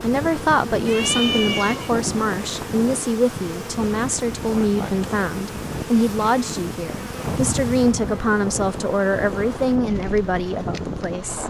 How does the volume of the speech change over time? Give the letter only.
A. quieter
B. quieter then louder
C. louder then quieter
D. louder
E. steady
E.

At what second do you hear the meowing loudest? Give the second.
1 s.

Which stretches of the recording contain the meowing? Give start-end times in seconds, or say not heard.
0.8-1.9, 7.2-8.2.